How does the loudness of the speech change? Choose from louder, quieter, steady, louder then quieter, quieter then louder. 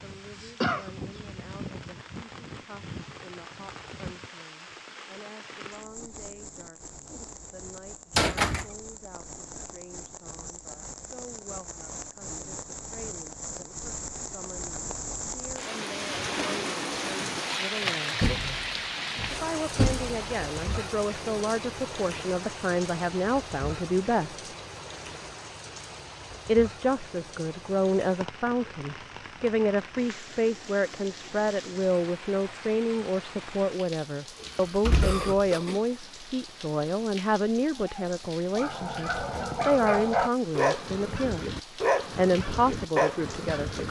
louder.